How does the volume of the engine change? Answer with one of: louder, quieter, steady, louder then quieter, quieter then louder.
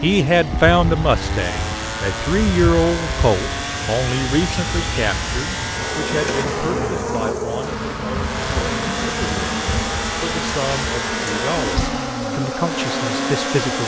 steady.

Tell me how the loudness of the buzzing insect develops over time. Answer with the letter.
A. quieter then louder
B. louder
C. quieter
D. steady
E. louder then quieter
B.